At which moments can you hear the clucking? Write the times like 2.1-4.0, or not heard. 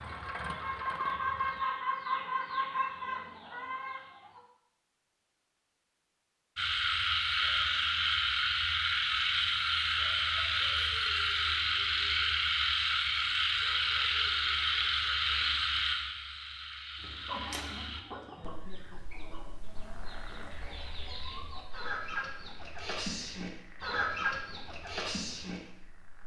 0.1-4.4, 17.0-25.6.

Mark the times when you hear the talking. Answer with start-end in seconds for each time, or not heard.
not heard.